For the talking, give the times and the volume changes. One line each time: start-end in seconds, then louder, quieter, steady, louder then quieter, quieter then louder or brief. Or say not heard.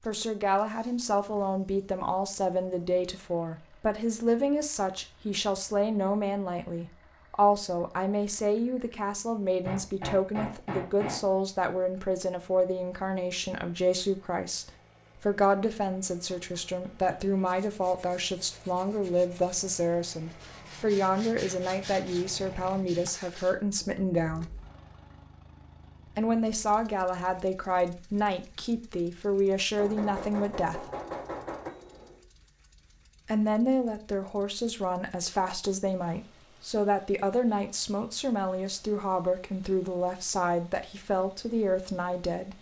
0.0-24.5 steady
26.1-30.9 steady
33.2-42.5 steady.